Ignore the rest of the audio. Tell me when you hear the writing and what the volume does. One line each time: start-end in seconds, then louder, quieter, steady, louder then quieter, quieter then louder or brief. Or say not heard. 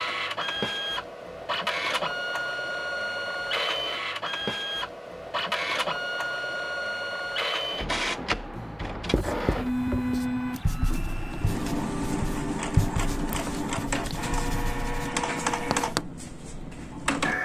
9.1-16.0 louder then quieter.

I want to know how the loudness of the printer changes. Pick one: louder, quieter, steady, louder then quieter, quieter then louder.
steady.